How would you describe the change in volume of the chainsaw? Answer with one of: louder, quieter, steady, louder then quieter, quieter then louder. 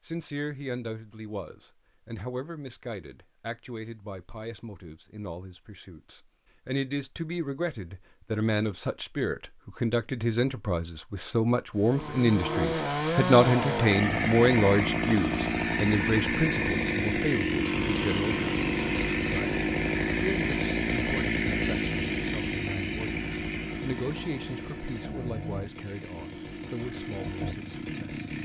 quieter.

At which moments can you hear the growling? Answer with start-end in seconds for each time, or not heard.
11.9-12.8.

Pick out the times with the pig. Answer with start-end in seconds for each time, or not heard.
not heard.